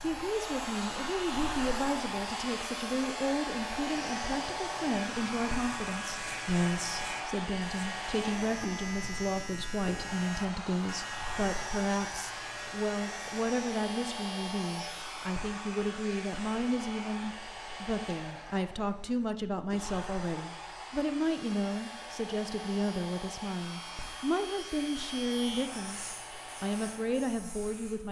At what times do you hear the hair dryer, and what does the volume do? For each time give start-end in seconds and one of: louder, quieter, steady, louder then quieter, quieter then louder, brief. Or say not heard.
0.0-28.0 quieter.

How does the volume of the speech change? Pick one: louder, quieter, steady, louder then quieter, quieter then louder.
steady.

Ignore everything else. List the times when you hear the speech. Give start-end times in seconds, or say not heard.
0.0-28.0.